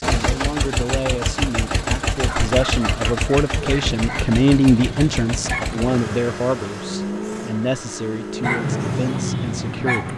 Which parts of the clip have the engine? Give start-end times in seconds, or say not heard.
0.0-9.9.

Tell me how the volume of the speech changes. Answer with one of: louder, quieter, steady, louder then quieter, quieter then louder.
louder then quieter.